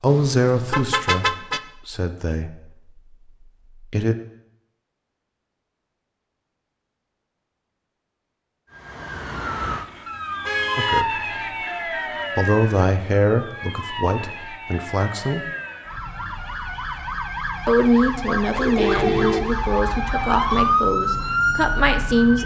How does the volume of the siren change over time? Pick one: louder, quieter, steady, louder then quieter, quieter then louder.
quieter then louder.